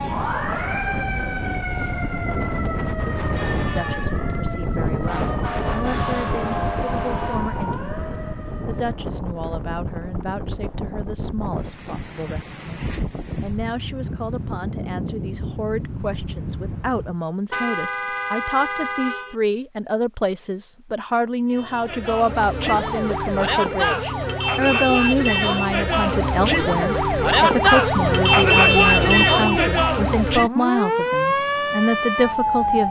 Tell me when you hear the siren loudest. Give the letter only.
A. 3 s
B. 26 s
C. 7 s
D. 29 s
D.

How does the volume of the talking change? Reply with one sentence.
The loudness of the talking goes up.